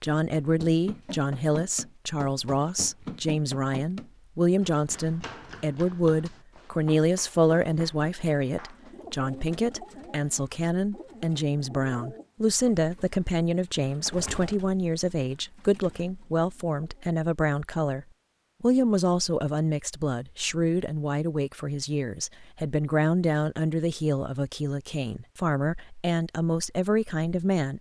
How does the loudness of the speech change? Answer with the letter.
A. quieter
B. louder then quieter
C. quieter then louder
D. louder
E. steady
E.